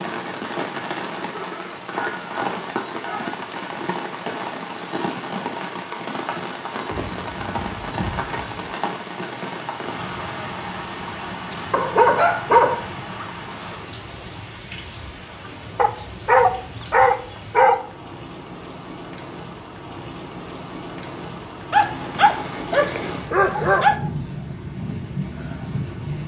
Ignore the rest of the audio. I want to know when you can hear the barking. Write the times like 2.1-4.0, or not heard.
1.3-3.4, 6.9-8.8, 11.7-13.2, 15.8-17.8, 21.7-23.9.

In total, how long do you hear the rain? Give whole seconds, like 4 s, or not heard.
26 s.